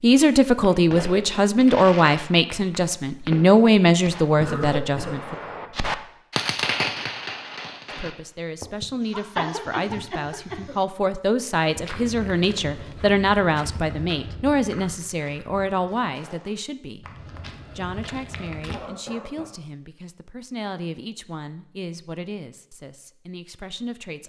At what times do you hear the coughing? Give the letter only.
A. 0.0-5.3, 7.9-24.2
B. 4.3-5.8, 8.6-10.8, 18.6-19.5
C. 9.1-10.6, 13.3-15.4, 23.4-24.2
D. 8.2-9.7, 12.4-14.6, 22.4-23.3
B.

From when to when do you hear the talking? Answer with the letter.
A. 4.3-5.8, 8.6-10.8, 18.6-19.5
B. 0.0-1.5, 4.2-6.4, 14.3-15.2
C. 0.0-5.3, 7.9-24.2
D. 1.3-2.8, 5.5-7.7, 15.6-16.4
C.